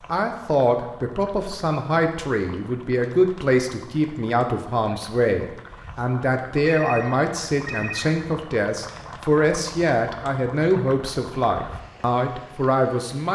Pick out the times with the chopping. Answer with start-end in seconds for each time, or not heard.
not heard.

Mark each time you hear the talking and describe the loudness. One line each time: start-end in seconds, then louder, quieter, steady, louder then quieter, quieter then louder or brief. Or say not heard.
0.1-13.3 steady.